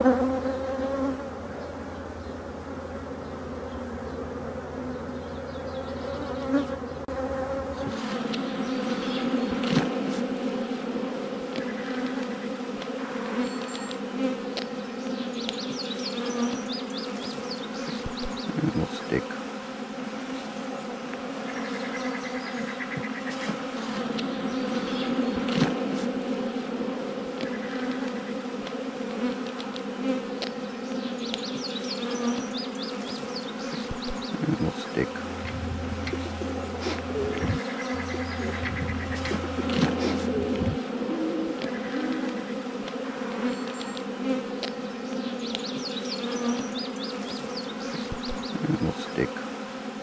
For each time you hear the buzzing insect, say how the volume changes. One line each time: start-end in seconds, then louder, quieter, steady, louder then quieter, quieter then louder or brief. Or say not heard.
0.0-49.9 steady.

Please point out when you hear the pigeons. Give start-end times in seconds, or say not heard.
35.1-42.3.